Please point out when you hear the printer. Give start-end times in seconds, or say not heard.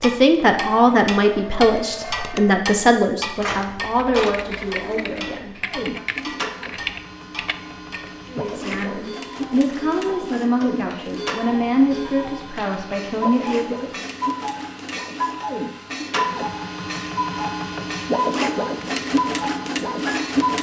0.1-20.5.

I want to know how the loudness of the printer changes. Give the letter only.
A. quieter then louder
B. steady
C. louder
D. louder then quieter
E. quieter
C.